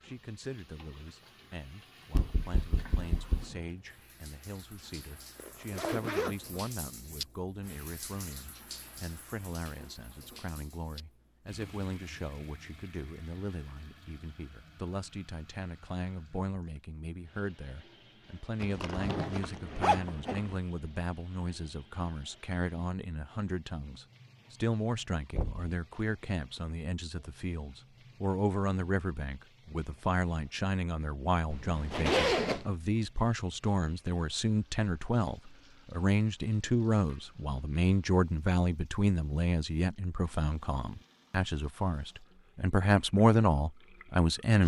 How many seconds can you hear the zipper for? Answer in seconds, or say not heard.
4 s.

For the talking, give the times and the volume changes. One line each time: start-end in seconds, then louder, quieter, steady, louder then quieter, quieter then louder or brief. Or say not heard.
0.0-44.6 louder.